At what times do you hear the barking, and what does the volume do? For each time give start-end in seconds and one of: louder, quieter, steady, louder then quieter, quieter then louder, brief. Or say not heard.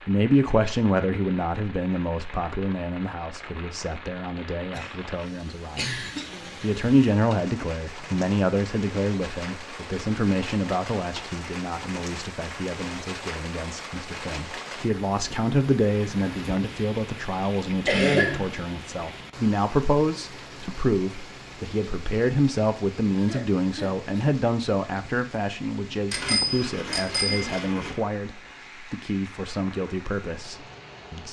not heard.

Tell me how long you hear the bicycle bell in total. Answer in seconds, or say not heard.
2 s.